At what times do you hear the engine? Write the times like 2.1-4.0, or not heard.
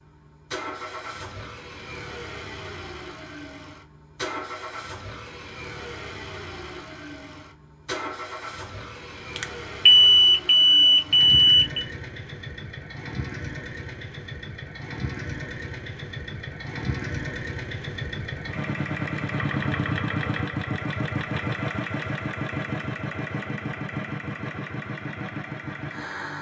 0.0-26.3.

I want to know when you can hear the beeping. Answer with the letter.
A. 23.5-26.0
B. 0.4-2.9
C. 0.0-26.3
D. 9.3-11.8
D.